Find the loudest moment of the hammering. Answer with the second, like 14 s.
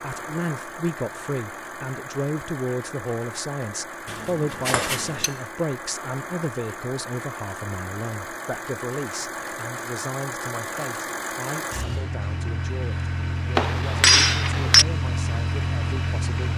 14 s.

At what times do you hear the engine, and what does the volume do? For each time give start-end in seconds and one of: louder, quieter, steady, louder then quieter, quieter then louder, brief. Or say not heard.
0.0-16.5 louder.